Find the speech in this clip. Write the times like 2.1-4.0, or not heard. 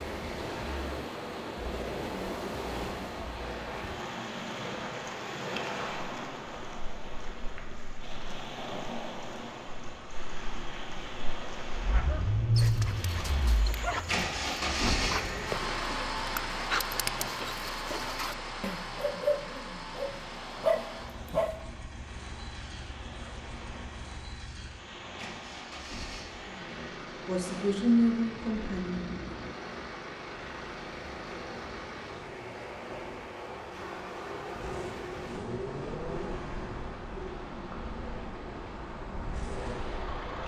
26.5-29.1.